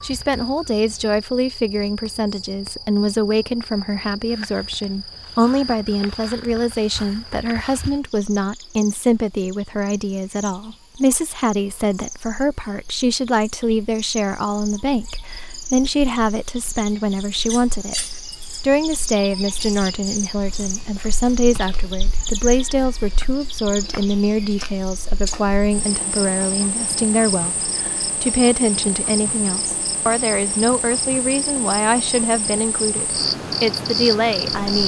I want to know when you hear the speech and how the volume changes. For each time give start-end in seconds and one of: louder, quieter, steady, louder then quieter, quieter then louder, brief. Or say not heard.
0.0-34.8 steady.